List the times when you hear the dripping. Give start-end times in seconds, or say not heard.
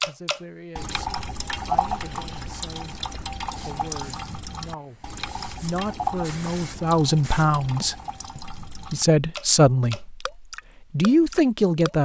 0.0-11.9.